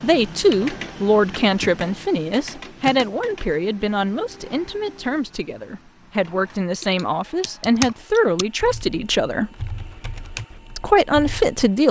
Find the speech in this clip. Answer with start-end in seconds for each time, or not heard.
0.0-9.5, 10.8-11.8.